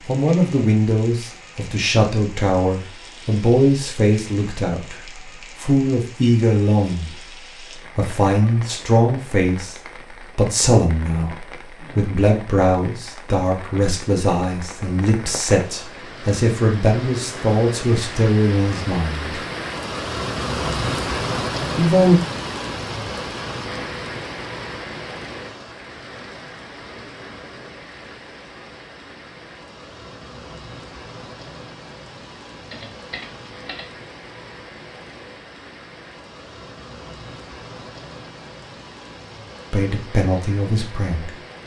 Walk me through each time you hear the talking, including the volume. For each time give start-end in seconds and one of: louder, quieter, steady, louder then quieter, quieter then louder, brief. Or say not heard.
0.1-19.4 steady
21.8-22.2 brief
39.7-41.4 brief.